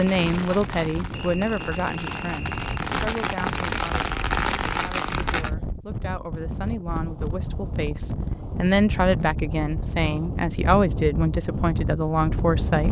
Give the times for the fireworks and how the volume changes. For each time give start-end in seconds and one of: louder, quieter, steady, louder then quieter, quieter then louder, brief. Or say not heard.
0.0-5.5 louder.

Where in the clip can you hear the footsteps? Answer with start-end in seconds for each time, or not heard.
not heard.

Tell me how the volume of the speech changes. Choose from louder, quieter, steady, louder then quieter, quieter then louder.
quieter then louder.